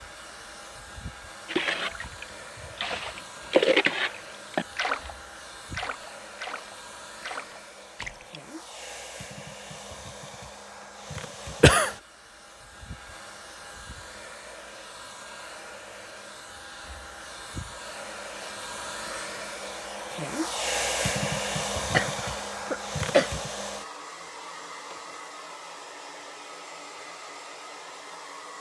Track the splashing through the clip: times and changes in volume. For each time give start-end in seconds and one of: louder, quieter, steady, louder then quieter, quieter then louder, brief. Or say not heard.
1.4-8.4 louder then quieter.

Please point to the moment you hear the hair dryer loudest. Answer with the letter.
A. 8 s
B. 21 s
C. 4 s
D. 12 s
B.